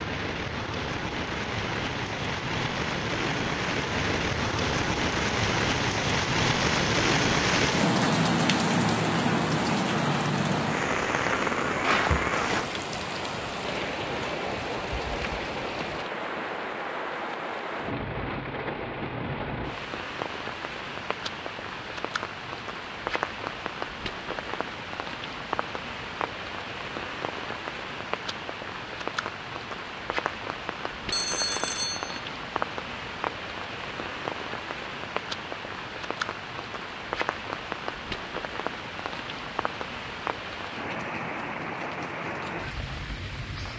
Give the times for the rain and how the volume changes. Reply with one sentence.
You can hear the rain from 0.0 to 43.7 s, getting quieter.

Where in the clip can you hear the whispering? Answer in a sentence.
You can't hear the whispering here.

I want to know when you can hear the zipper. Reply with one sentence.
The zipper can be heard from 11.8 to 12.7 s.